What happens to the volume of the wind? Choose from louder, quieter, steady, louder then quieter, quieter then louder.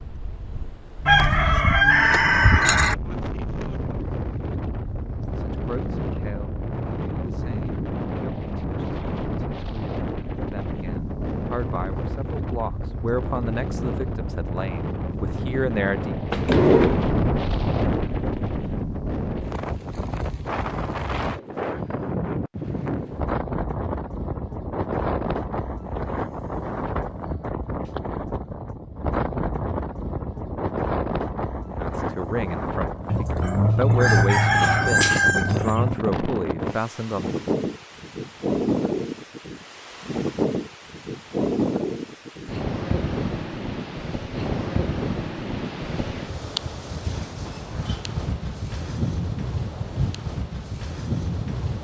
steady.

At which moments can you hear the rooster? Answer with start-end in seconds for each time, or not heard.
1.1-3.0, 33.0-36.0.